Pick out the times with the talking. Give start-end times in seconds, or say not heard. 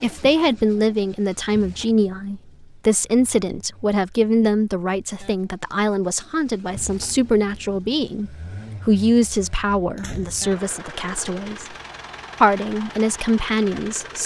0.0-11.8, 12.4-14.2.